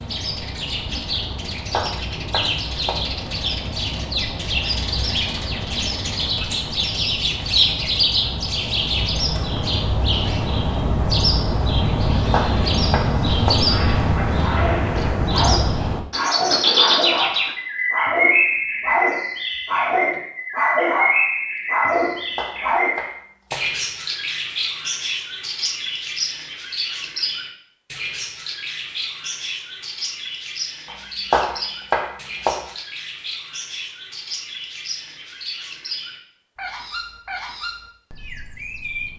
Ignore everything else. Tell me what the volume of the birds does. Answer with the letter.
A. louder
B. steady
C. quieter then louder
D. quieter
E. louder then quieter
D.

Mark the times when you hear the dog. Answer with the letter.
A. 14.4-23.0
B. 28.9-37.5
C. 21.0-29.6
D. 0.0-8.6
A.